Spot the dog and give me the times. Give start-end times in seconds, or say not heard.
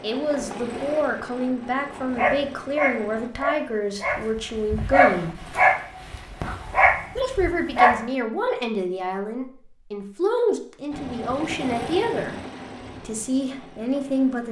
2.1-8.0.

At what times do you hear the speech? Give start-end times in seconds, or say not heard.
0.0-5.5, 7.2-12.4, 13.0-14.4.